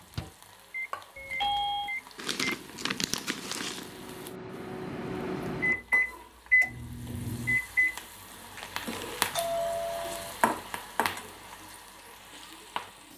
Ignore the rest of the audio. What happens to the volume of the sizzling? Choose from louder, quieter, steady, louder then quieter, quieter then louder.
louder.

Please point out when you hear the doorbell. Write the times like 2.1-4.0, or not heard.
1.1-1.9, 9.3-10.3.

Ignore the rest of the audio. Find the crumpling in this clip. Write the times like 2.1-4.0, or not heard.
2.1-4.0, 8.6-9.3.